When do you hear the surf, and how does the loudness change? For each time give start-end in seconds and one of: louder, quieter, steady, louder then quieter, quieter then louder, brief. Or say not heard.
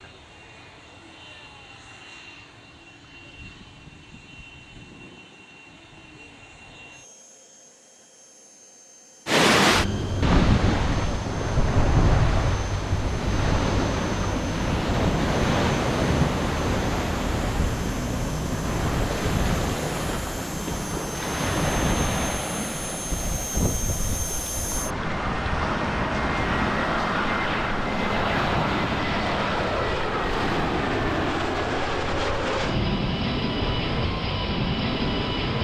9.2-35.5 quieter.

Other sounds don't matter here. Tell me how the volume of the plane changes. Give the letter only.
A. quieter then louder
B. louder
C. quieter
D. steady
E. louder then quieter
B.